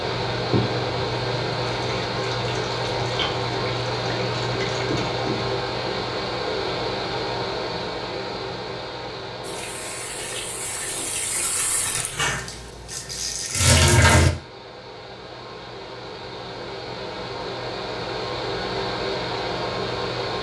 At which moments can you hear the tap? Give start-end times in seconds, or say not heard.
0.0-5.5, 9.4-14.3.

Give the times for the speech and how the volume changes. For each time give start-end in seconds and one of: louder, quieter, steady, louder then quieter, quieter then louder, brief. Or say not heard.
not heard.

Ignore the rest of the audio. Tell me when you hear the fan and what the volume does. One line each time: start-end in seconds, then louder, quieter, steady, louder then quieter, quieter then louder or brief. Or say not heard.
0.0-20.3 quieter then louder.